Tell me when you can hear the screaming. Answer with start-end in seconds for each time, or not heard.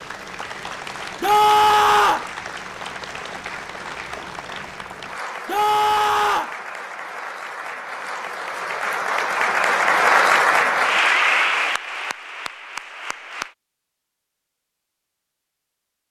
1.2-2.2, 5.5-6.5, 11.2-11.6.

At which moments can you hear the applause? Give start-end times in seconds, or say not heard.
0.0-13.6.